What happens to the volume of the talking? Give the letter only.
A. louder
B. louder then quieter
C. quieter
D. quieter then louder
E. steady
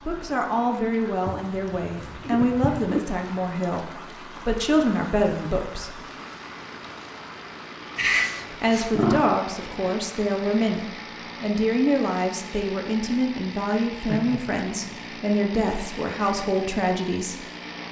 E.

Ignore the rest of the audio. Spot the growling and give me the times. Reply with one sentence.
The growling can be heard from 1.2 to 3.0 s, from 8.0 to 9.2 s and from 14.1 to 15.1 s.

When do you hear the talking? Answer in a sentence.
The talking can be heard from 0.1 to 6.0 s and from 8.5 to 17.4 s.